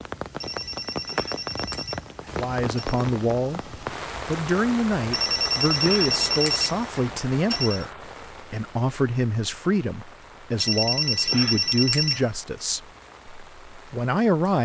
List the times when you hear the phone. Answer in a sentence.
The phone can be heard from 0.3 to 3.0 s, from 5.0 to 7.8 s and from 10.6 to 12.3 s.